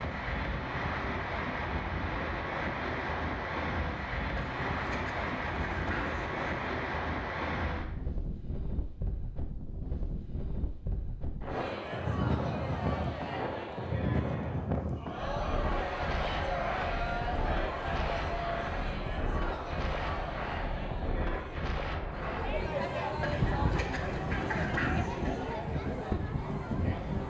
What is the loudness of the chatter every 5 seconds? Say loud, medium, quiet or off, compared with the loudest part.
off, off, medium, loud, loud, loud.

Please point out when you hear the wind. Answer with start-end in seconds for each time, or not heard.
0.0-27.2.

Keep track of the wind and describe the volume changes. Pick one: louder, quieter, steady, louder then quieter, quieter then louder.
steady.